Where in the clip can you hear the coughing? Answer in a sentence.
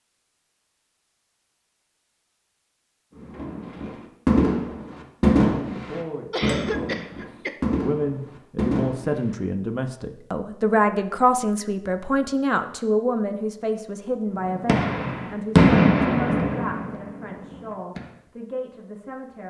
You can hear the coughing from 6.3 to 7.5 s.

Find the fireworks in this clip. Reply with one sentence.
You can hear the fireworks from 3.2 to 9.3 s and from 14.4 to 18.1 s.